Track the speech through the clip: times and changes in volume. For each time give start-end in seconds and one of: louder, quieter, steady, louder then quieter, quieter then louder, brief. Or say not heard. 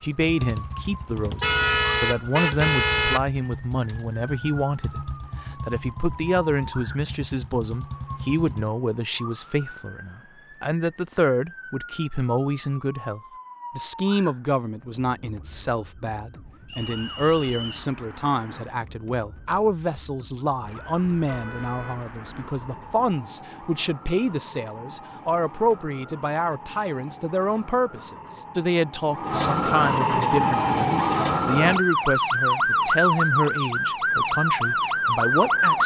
0.0-35.8 steady.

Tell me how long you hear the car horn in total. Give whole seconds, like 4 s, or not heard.
4 s.